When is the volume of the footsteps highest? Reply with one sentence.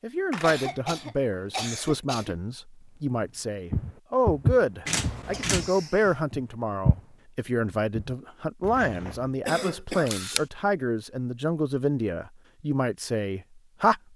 The loudest moment of the footsteps is at 4 seconds.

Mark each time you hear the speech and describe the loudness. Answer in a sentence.
You can hear the speech from 0.0 to 14.0 s, at a steady volume.